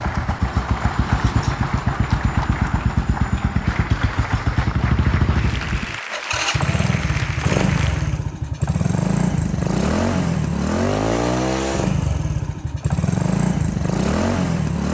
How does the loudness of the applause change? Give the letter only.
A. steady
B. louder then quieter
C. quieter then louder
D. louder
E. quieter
A.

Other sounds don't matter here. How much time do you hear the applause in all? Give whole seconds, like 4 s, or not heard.
8 s.